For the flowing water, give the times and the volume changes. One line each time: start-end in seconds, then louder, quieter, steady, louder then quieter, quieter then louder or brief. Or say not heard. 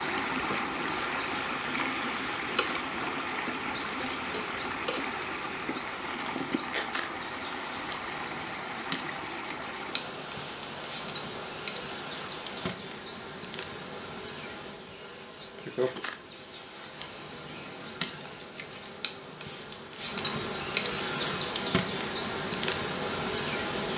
0.0-12.8 quieter.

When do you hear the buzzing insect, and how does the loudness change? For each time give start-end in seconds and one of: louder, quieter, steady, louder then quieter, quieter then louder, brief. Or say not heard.
0.0-23.9 louder.